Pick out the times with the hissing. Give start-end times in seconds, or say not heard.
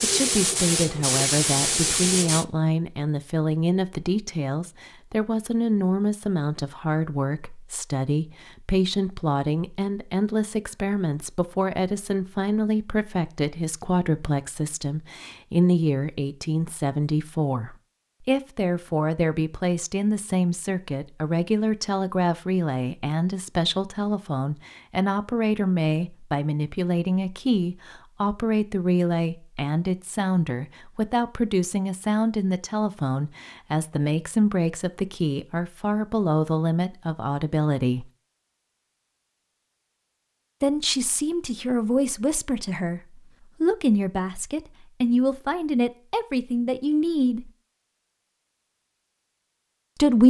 0.0-2.5.